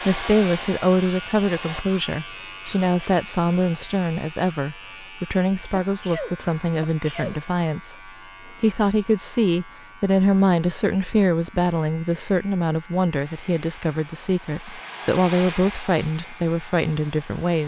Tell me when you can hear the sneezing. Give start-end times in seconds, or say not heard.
5.8-7.4.